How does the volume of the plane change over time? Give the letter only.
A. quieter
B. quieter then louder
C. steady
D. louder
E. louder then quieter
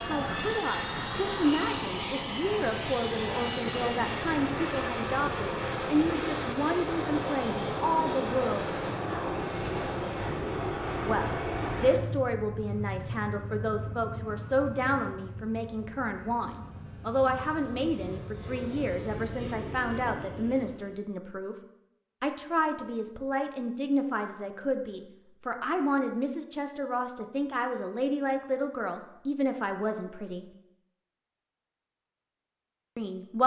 A.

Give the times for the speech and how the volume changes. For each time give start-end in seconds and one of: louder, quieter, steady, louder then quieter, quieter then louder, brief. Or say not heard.
0.0-8.7 steady
11.0-21.6 steady
22.2-30.5 steady
33.0-33.4 brief.